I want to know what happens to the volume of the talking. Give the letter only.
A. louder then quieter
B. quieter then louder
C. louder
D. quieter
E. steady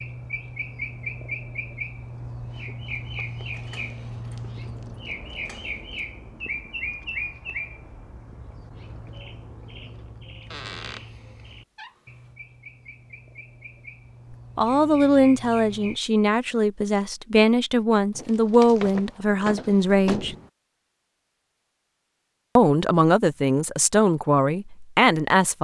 E.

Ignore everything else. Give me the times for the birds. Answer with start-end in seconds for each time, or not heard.
0.0-16.0.